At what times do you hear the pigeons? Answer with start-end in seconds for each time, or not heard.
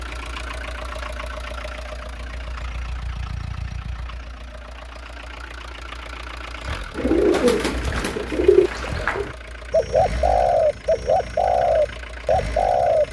7.0-13.0.